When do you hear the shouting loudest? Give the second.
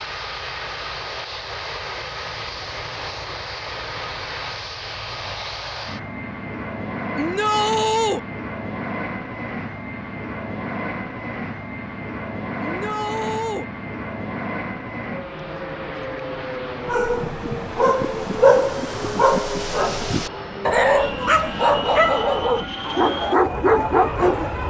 8 s.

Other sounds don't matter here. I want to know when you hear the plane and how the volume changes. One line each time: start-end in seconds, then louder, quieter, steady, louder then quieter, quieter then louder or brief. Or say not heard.
0.0-24.6 steady.